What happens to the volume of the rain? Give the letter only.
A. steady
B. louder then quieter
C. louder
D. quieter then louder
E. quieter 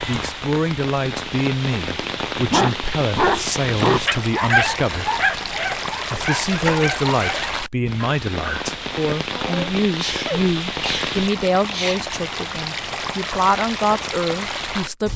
A.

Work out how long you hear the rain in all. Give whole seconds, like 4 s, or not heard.
15 s.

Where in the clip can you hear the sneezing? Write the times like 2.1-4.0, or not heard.
9.3-12.0.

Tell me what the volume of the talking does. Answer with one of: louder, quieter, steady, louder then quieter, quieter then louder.
steady.